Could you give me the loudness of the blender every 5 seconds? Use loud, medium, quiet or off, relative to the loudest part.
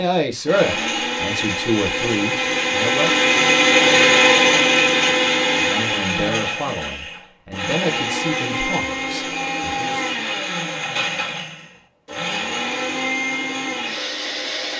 loud, medium, medium.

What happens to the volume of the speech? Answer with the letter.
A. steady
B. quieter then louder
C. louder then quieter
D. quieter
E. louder
D.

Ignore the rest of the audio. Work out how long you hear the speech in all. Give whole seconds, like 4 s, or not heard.
8 s.